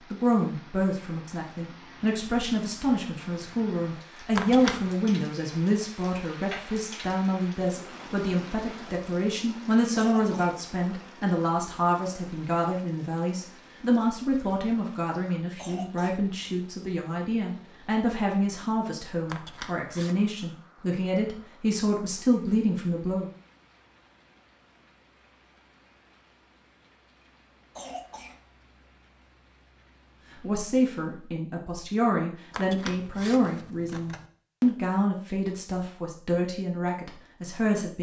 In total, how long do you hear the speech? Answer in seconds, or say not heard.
31 s.